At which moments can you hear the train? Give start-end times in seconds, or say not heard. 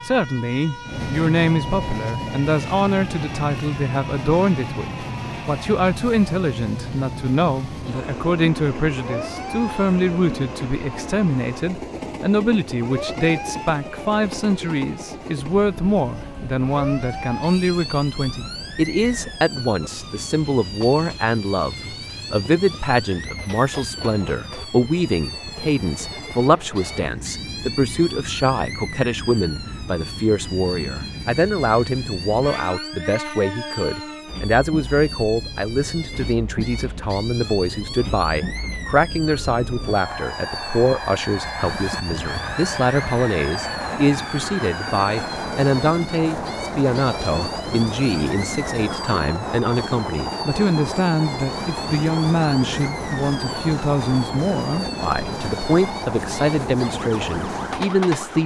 0.0-58.4.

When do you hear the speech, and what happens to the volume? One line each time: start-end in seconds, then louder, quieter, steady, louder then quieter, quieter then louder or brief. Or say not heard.
0.0-58.4 steady.